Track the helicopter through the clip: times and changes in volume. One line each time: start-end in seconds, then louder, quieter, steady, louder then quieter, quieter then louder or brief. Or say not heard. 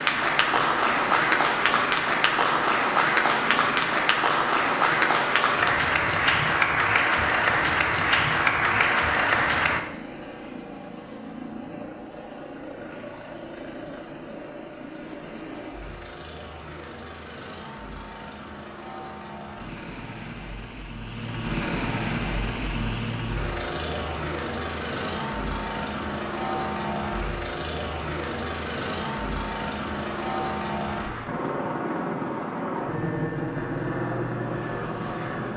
0.0-35.5 louder.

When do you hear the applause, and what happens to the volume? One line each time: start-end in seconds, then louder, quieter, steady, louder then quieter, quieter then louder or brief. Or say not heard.
0.0-9.8 steady.